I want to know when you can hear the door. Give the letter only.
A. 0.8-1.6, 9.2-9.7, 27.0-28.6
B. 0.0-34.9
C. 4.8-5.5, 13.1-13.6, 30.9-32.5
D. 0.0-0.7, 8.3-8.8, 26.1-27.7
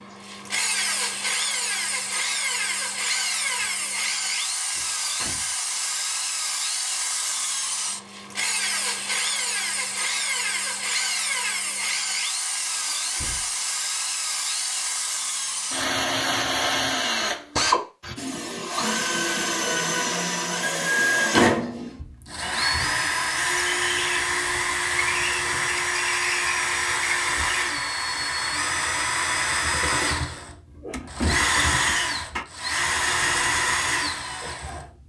C.